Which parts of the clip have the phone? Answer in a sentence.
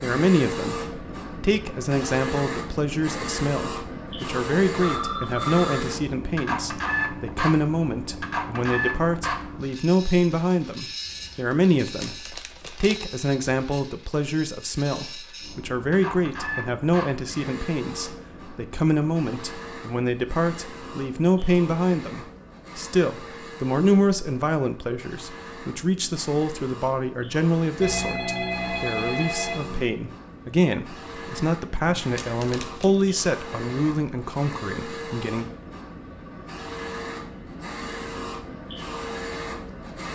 The phone can be heard from 4.8 to 5.8 s and from 27.8 to 29.8 s.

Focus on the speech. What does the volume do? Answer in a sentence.
The loudness of the speech stays about the same.